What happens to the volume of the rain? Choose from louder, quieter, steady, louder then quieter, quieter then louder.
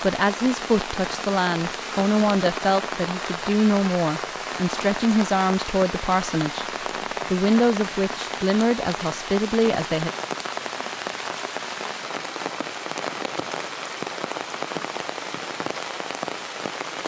steady.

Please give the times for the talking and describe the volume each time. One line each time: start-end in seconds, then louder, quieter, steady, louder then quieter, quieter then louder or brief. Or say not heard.
0.0-6.7 steady
7.2-10.1 brief.